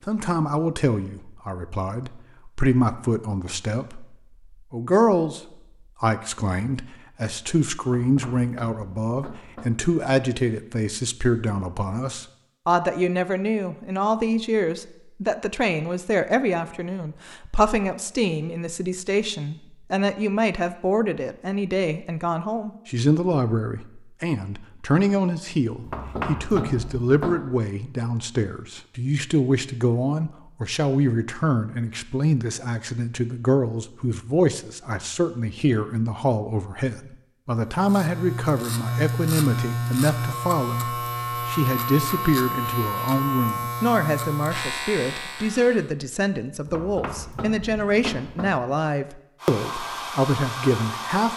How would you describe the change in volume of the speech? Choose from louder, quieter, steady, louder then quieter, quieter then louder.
steady.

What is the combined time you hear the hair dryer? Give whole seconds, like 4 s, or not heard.
2 s.